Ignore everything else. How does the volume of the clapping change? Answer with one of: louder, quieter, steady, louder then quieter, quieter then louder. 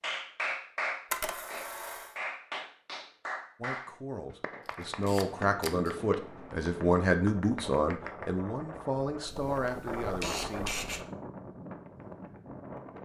quieter.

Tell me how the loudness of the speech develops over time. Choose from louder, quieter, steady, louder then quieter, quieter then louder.
louder then quieter.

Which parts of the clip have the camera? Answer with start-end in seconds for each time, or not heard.
1.1-2.1, 4.7-5.9, 9.4-11.0.